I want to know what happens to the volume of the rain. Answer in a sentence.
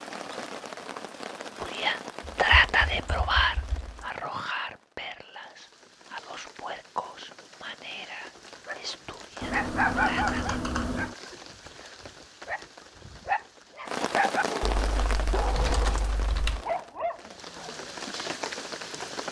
The volume of the rain goes down, then up.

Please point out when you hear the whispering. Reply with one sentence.
You can hear the whispering from 1.6 to 10.6 s.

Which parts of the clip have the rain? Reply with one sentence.
The rain can be heard from 0.0 to 19.2 s.